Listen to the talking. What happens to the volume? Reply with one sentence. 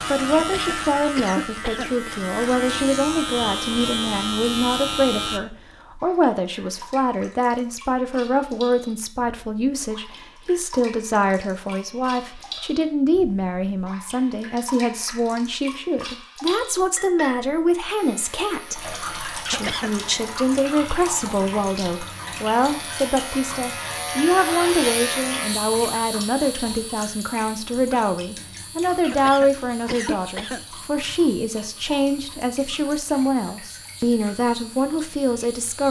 The volume of the talking stays about the same.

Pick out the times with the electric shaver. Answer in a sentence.
You can hear the electric shaver from 0.0 to 5.4 s and from 17.9 to 35.8 s.